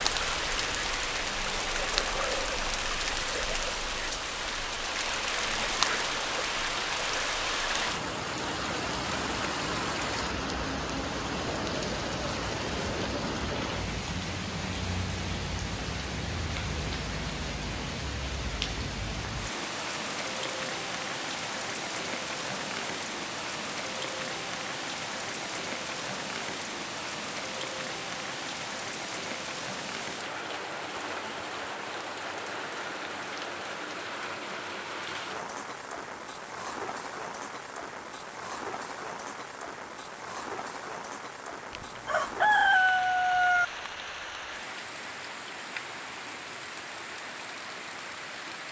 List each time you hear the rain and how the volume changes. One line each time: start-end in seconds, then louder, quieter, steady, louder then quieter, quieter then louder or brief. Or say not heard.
0.0-48.6 quieter.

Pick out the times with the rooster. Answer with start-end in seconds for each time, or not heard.
41.7-43.6.